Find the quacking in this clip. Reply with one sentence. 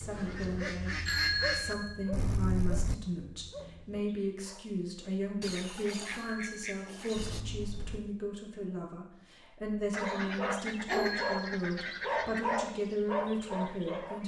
You can hear the quacking from 0.1 to 1.8 s, from 5.4 to 7.5 s and from 9.9 to 12.7 s.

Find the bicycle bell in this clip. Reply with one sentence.
The bicycle bell can be heard from 1.1 to 3.0 s, from 6.0 to 8.0 s and from 10.8 to 11.5 s.